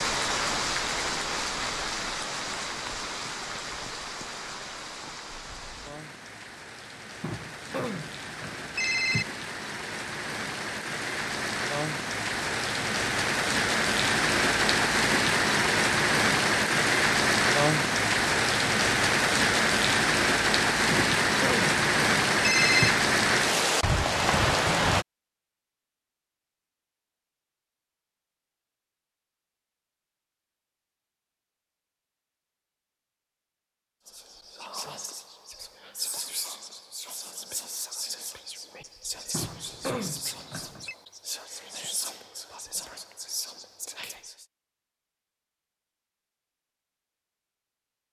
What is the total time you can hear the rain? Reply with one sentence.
You can hear the rain for 25 seconds altogether.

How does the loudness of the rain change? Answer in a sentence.
The loudness of the rain goes down, then up.